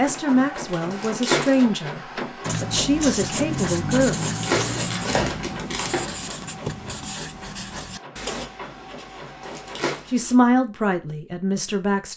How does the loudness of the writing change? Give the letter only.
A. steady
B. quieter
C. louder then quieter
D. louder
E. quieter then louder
B.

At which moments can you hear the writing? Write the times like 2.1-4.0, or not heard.
2.4-10.4.